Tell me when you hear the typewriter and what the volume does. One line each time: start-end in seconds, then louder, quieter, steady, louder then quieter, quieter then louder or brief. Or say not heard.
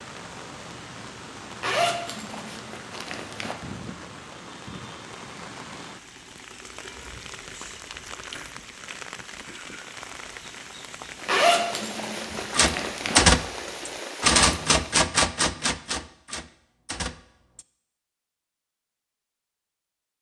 12.5-17.6 quieter.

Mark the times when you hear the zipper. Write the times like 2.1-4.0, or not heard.
1.6-3.5, 11.2-13.2.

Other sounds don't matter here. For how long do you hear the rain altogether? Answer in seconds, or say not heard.
15 s.